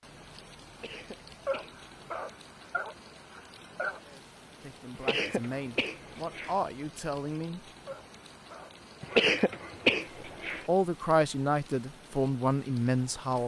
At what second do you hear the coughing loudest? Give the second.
9 s.